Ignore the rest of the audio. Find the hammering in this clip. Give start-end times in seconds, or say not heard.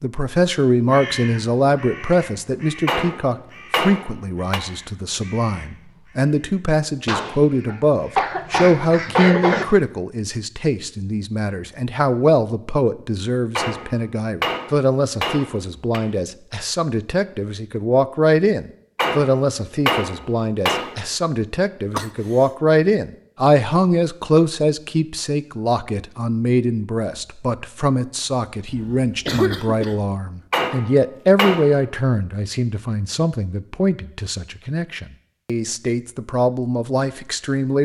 2.9-4.6, 13.6-16.0, 18.9-21.0, 30.5-31.8.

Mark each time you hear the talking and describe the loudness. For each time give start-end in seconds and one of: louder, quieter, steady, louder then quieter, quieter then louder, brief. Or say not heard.
0.0-37.8 steady.